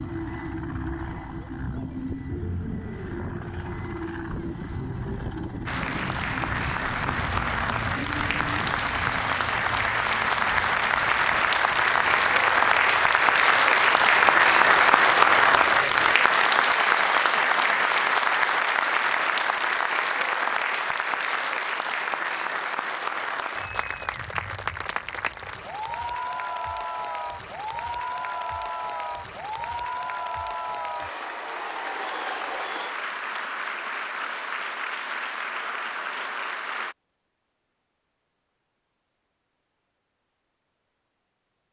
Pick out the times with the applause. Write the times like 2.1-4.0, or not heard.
5.7-37.0.